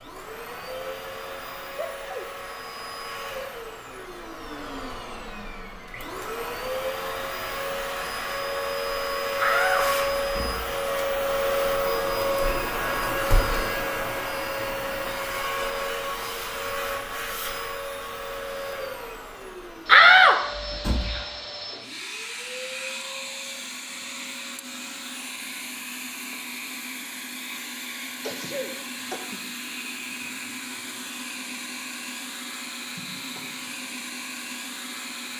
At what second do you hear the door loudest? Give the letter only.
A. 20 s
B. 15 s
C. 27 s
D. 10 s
A.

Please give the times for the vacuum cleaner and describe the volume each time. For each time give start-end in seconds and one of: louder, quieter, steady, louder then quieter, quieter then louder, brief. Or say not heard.
0.0-35.3 louder then quieter.